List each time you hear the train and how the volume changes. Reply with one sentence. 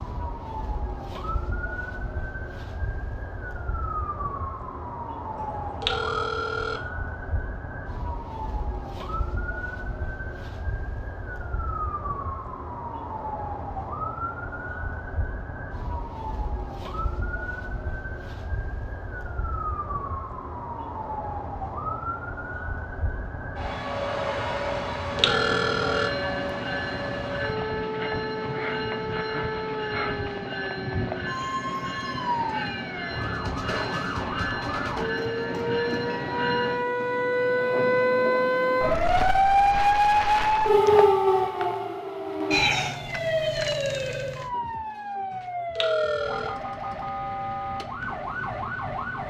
The train can be heard from 23.8 to 39.2 s, at a steady volume.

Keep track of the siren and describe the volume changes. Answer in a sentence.
The volume of the siren goes up.